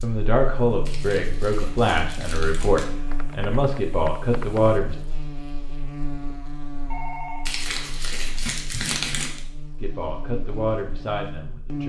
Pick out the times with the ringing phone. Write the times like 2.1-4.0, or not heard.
6.9-7.5.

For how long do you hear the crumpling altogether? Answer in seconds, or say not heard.
4 s.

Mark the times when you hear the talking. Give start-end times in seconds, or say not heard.
0.0-5.0, 9.8-11.8.